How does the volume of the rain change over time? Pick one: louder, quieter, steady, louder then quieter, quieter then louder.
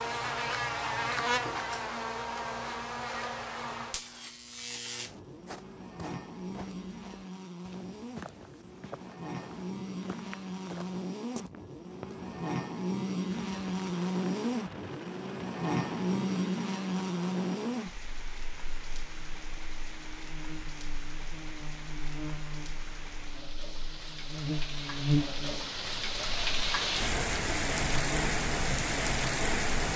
louder.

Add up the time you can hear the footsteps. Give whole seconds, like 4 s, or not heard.
7 s.